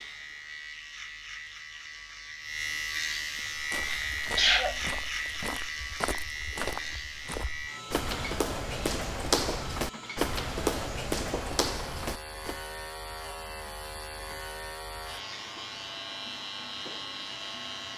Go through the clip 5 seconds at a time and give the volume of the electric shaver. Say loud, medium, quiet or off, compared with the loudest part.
loud, loud, medium, loud.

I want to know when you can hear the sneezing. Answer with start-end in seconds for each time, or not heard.
4.3-4.8.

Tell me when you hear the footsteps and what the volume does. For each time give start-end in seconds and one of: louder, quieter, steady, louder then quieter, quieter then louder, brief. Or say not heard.
3.4-12.6 louder.